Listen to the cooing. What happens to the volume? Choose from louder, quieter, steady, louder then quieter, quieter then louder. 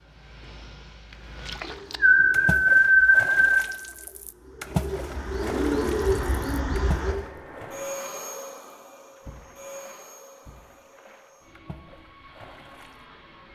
quieter then louder.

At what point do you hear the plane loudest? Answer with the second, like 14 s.
8 s.